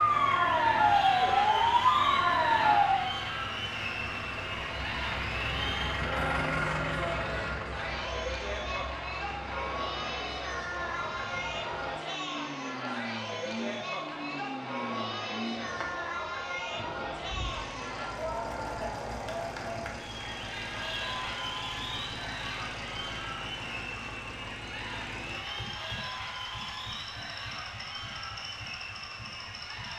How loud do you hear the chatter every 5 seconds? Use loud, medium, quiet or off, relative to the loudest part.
loud, loud, loud, loud, loud, medium.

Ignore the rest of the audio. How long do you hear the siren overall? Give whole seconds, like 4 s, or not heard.
3 s.